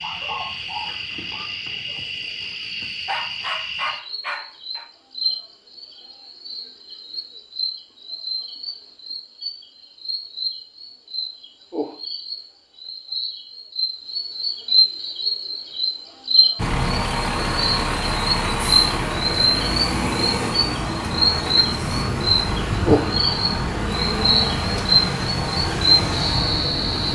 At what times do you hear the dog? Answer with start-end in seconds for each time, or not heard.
0.0-2.0, 3.0-4.8.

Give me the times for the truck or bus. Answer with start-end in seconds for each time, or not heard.
16.6-27.0.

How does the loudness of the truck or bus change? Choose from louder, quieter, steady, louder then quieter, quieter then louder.
steady.